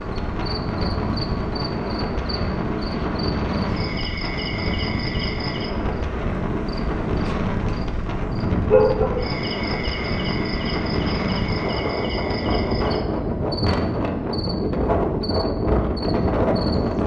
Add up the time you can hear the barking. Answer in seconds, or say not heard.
2 s.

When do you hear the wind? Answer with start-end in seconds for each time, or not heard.
0.0-17.0.